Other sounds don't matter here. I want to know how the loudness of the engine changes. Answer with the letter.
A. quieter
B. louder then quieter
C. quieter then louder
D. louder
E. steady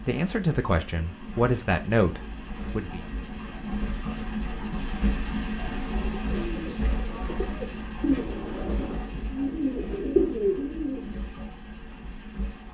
B.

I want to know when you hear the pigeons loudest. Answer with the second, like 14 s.
10 s.